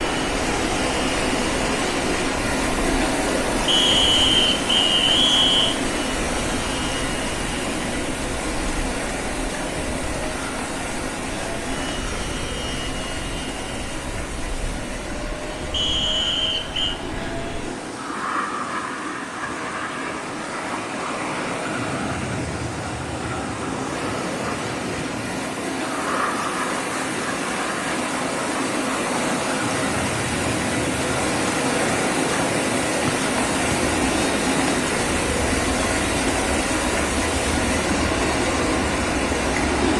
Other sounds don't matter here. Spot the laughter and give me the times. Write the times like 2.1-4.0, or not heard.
not heard.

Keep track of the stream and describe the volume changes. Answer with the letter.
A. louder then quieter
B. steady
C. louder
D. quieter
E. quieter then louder
E.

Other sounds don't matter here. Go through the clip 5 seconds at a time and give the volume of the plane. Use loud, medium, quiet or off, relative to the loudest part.
medium, medium, medium, loud, loud, loud, loud, medium.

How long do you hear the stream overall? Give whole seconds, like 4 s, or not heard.
40 s.